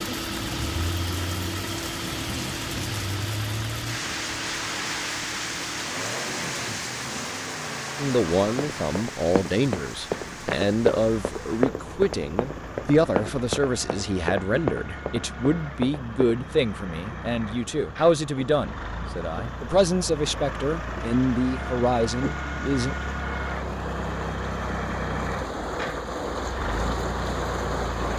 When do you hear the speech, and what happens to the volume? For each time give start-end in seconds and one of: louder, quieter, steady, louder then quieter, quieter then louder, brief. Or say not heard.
8.0-22.9 steady.